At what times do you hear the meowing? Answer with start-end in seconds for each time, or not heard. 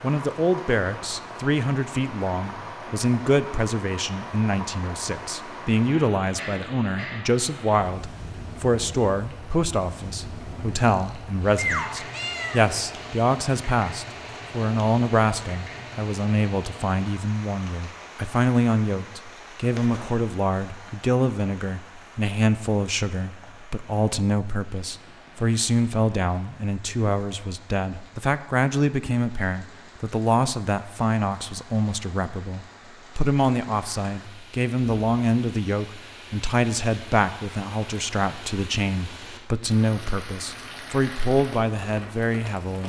10.8-12.7.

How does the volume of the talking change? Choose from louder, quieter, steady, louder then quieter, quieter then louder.
steady.